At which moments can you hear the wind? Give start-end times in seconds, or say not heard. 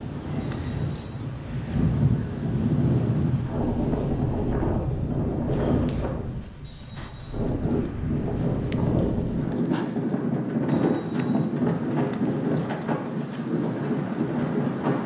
0.0-15.0.